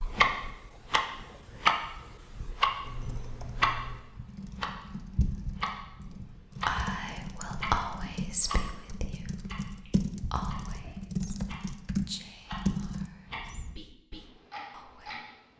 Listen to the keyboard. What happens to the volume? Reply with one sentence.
The loudness of the keyboard goes up.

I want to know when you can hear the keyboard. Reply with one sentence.
You can hear the keyboard from 2.8 to 13.1 s.